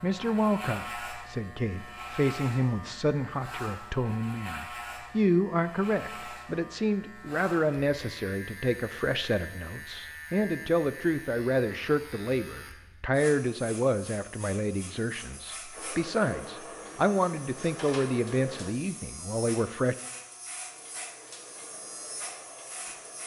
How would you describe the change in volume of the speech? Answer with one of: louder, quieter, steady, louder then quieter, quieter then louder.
steady.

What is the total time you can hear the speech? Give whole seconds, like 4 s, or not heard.
20 s.